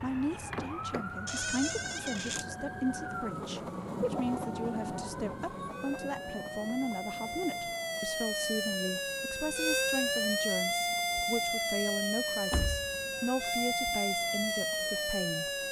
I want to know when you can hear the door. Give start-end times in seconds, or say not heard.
1.2-2.5, 12.5-13.5.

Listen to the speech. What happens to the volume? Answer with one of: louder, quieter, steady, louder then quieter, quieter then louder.
steady.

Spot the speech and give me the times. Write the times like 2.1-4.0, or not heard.
0.0-15.5.